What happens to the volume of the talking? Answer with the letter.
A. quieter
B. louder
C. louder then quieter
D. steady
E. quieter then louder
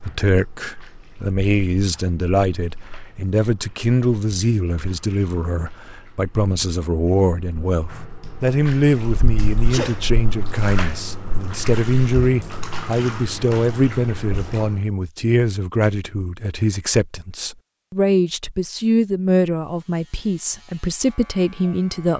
D.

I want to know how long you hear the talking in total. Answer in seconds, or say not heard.
22 s.